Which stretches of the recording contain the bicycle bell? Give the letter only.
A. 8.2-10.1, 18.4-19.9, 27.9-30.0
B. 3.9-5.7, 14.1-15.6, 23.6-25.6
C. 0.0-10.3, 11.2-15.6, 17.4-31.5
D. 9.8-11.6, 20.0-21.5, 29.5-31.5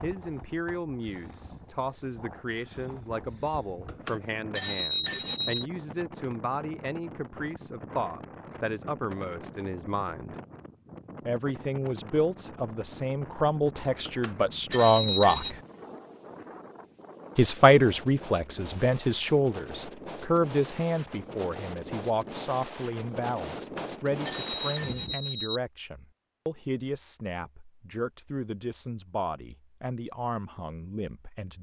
B.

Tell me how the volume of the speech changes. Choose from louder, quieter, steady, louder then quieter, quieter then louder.
louder then quieter.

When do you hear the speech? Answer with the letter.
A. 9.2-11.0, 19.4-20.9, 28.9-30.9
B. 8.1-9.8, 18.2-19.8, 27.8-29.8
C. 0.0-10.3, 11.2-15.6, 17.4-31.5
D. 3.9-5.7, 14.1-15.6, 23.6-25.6
C.